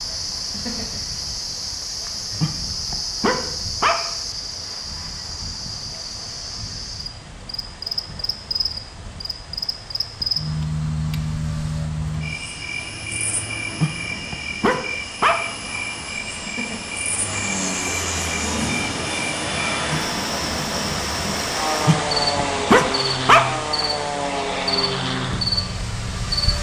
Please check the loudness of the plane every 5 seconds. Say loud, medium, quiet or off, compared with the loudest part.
quiet, quiet, quiet, loud, loud, loud.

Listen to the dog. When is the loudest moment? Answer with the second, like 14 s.
23 s.